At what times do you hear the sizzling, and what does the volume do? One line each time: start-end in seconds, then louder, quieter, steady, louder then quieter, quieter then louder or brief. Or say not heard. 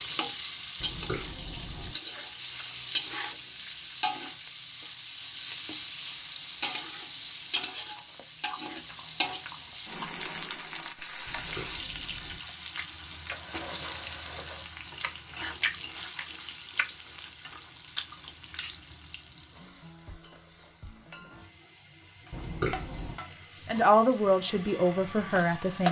0.0-25.8 quieter.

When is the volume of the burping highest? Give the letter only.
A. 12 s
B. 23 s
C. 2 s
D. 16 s
B.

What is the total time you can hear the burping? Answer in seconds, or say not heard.
3 s.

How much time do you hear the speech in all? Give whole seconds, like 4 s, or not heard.
2 s.